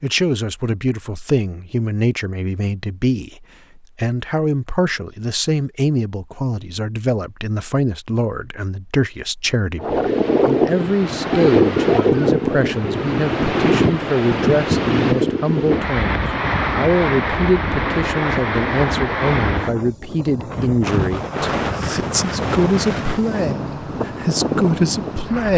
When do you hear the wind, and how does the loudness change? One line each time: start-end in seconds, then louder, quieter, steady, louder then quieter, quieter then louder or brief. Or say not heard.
9.8-25.5 quieter.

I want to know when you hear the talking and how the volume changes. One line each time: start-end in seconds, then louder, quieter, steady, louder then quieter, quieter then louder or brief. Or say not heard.
0.0-25.5 steady.